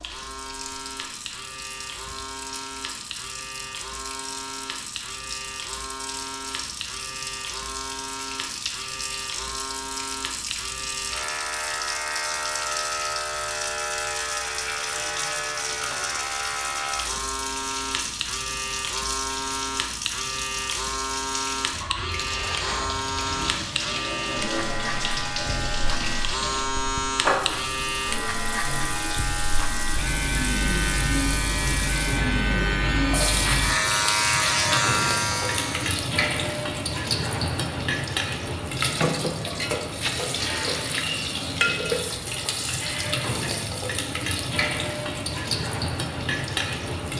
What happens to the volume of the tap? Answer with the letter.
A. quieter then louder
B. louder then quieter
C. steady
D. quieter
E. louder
E.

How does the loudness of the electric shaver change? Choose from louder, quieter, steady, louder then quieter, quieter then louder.
louder.